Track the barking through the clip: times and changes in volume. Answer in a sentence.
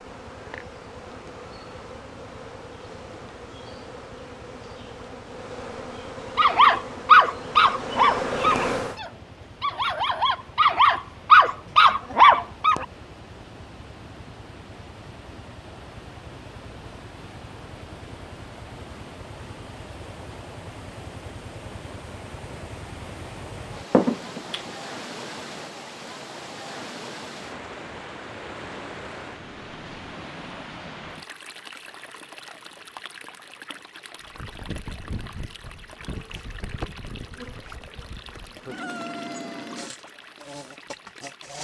The barking can be heard from 6.3 to 12.8 s, getting quieter then louder.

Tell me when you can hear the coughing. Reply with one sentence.
You can hear the coughing from 23.9 to 24.7 s.